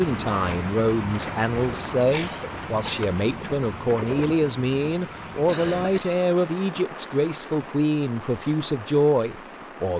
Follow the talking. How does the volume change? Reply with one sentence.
The loudness of the talking stays about the same.